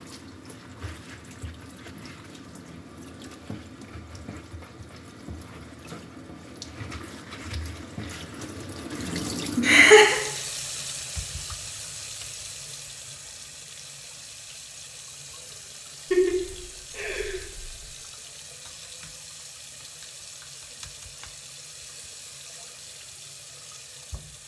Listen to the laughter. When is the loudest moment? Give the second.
10 s.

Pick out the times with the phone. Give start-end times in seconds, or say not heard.
not heard.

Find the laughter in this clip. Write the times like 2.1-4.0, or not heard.
9.6-10.2, 16.1-17.7.